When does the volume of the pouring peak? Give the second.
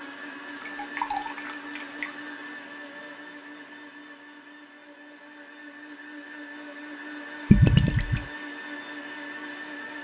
8 s.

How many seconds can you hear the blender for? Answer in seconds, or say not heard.
10 s.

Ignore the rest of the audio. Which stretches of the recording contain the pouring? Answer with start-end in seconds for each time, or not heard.
0.4-2.1, 7.5-8.2.